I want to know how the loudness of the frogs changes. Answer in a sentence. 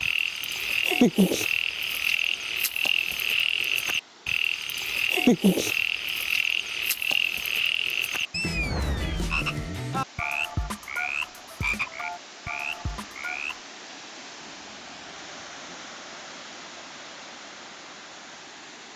The loudness of the frogs goes down.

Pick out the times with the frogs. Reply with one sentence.
You can hear the frogs from 0.0 to 13.6 s.